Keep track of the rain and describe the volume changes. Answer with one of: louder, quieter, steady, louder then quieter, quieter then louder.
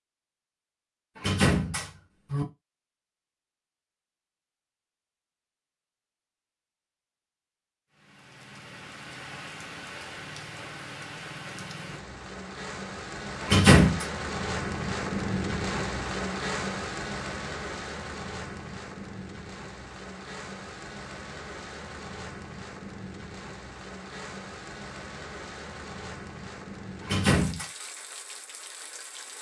louder then quieter.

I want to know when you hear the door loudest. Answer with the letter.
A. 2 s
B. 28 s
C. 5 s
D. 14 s
D.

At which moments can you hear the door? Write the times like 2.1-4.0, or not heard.
1.1-2.5, 13.4-14.1, 27.0-27.6.